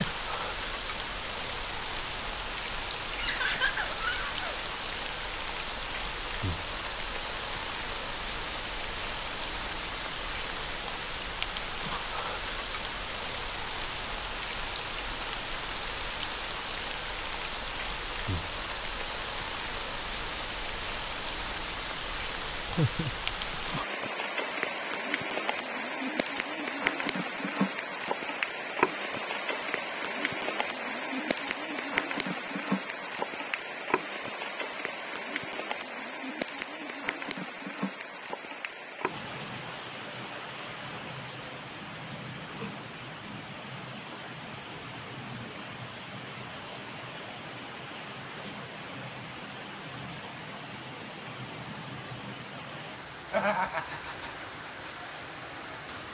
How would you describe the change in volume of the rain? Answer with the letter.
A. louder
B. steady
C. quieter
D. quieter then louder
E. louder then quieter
C.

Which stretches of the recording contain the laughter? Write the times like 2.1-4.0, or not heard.
3.1-4.7, 22.6-23.8, 53.3-54.4.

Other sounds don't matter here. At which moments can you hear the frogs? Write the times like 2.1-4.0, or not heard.
not heard.